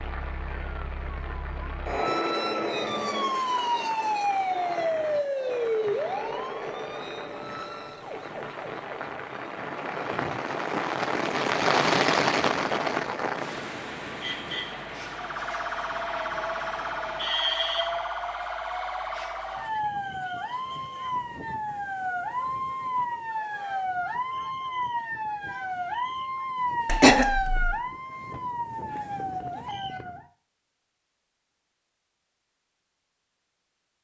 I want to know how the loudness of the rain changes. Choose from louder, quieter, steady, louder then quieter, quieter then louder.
louder then quieter.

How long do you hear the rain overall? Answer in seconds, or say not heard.
17 s.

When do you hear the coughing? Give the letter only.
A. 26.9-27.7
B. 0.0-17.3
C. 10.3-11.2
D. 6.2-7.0
A.